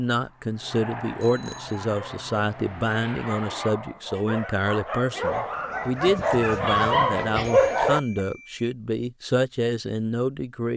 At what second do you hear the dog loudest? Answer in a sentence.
The volume of the dog peaks at 8 seconds.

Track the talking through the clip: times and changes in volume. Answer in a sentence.
The talking can be heard from 0.0 to 10.7 s, at a steady volume.